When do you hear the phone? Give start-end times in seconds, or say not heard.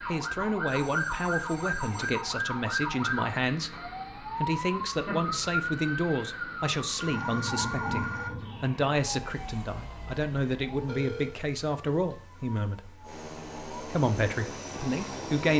0.7-2.2, 7.0-8.3, 10.8-11.4.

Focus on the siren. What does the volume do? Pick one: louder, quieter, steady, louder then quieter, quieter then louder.
quieter.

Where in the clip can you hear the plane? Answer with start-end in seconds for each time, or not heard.
13.0-15.5.